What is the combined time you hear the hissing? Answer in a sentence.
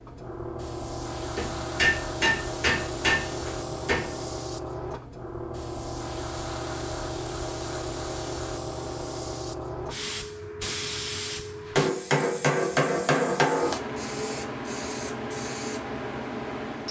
The hissing can be heard for 17 seconds in total.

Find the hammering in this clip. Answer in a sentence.
You can hear the hammering from 1.4 to 4.2 s and from 11.8 to 13.8 s.